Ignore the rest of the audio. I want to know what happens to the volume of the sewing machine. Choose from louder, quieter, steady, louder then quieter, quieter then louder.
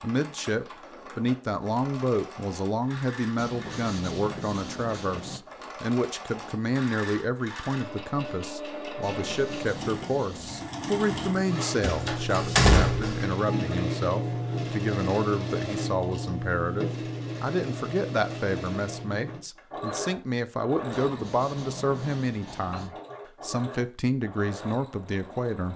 louder then quieter.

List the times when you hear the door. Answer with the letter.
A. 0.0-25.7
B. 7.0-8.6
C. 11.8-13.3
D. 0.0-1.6
C.